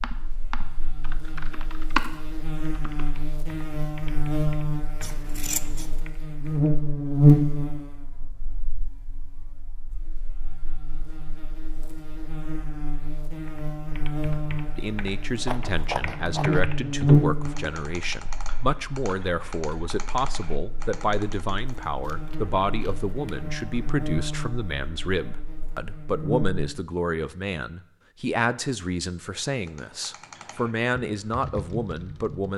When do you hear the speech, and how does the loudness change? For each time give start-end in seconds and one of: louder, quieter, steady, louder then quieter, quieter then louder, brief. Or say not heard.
14.8-32.5 steady.